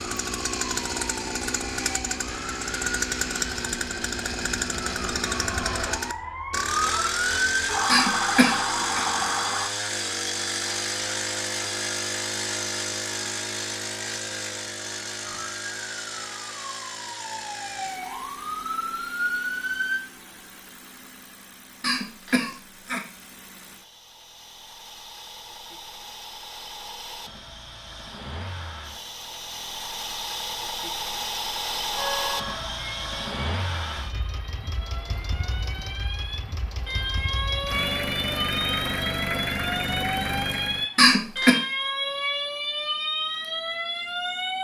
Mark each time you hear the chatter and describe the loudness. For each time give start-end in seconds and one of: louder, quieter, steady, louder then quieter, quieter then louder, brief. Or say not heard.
not heard.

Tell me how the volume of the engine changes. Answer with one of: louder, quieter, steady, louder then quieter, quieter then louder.
quieter then louder.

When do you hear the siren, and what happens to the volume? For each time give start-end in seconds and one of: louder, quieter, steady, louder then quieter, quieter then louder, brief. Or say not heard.
0.0-9.7 louder
15.2-20.0 louder
31.9-44.5 louder.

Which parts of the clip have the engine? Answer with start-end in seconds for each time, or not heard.
0.0-41.0.